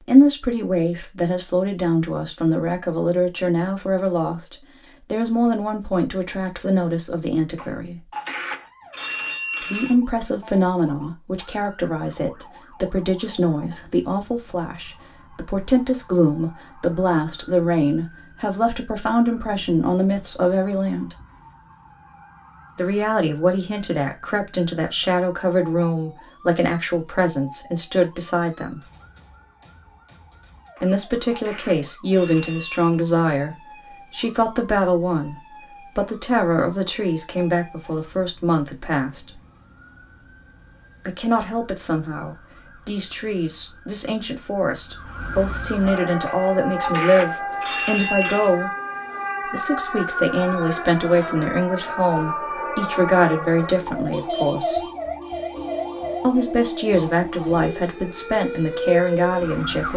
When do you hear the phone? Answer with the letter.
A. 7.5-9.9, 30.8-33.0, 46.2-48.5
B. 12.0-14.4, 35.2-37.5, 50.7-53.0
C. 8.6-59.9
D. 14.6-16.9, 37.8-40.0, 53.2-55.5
A.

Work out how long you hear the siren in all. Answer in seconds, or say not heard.
51 s.